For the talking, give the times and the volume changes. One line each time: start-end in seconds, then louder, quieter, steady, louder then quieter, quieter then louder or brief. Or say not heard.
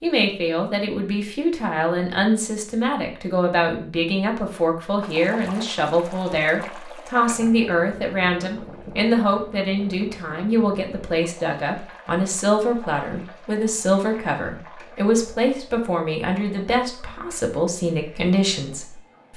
0.0-19.3 steady.